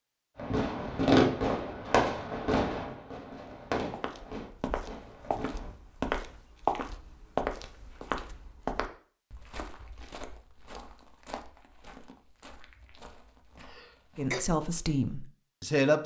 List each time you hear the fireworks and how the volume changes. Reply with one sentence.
You can hear the fireworks from 0.3 to 5.7 s, getting quieter.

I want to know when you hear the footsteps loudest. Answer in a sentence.
The loudest moment of the footsteps is at 7 seconds.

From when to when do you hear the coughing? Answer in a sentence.
You can hear the coughing from 13.6 to 14.4 s.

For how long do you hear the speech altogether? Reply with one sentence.
You can hear the speech for 2 seconds altogether.